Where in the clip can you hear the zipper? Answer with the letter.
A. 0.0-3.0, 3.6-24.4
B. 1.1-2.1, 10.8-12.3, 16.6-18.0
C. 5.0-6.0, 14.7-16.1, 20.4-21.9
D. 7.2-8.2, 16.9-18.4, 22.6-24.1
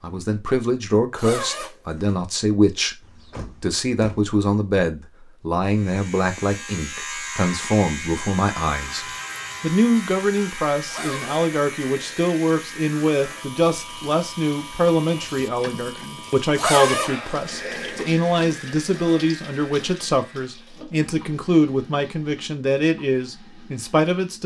B.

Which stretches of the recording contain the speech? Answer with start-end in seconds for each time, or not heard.
0.0-3.0, 3.6-24.4.